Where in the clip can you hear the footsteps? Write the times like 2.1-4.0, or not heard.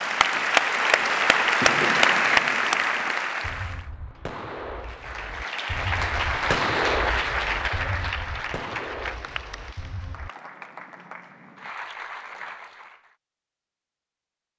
not heard.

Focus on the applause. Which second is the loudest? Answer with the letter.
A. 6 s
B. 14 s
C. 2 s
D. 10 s
C.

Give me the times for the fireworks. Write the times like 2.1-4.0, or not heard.
0.9-10.3.